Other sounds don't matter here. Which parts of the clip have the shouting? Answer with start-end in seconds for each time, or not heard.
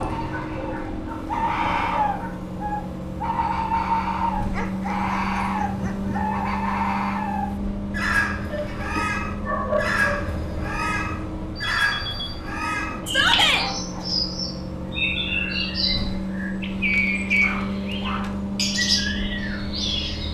13.1-13.7.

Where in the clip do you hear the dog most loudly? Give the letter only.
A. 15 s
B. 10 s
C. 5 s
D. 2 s
B.